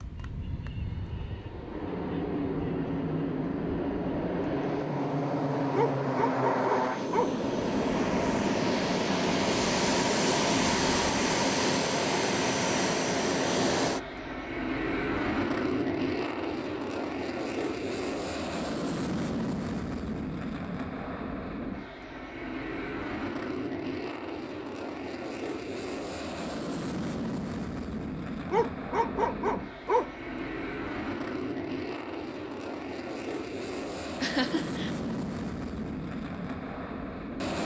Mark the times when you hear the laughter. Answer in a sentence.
The laughter can be heard from 34.2 to 34.9 s.